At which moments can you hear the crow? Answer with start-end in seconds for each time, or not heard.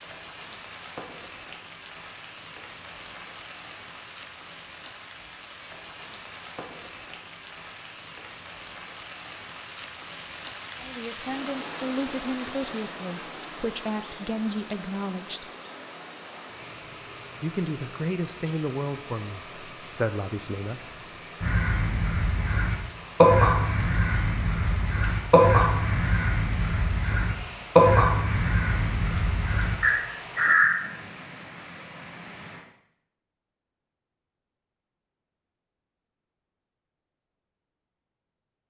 21.4-30.8.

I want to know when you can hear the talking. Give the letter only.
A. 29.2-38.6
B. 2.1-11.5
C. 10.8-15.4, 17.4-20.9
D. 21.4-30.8
C.